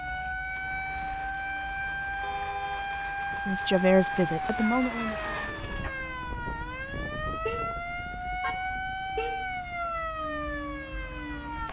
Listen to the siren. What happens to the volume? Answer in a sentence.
The loudness of the siren stays about the same.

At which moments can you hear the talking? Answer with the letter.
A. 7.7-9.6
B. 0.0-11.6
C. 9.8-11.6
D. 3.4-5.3
D.